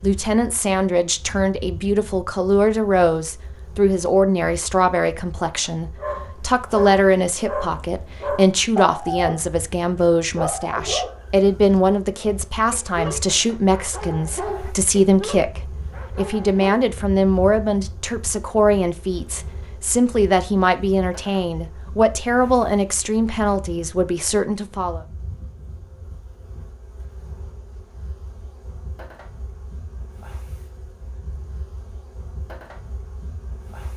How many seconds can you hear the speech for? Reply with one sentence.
The speech can be heard for 25 seconds in total.